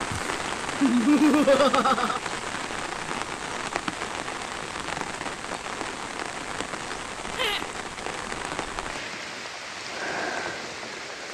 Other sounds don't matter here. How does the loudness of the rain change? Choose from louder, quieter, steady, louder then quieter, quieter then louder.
steady.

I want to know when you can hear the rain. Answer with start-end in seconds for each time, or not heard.
0.0-11.2.